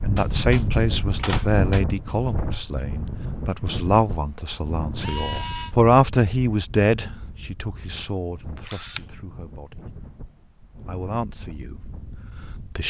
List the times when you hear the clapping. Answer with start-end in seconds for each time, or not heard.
not heard.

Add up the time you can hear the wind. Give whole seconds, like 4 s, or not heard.
13 s.